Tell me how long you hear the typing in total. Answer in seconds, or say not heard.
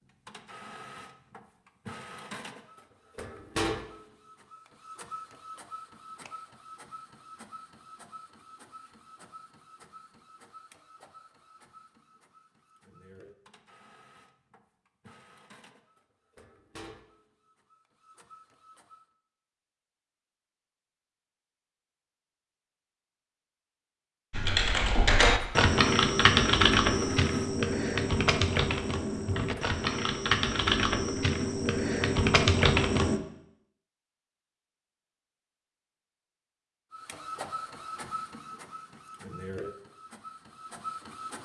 9 s.